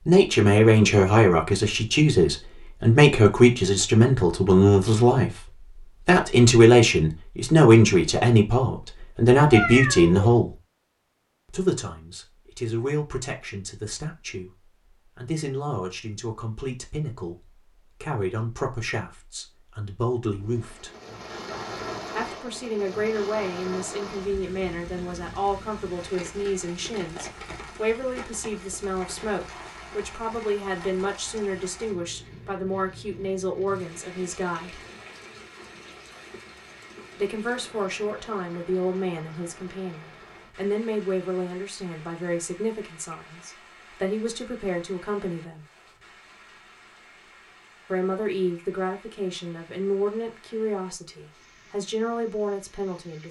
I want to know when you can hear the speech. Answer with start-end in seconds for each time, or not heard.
0.1-5.3, 6.0-10.5, 11.5-20.9, 22.1-34.8, 37.1-45.6, 47.9-53.2.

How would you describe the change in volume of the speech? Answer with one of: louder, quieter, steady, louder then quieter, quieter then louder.
quieter.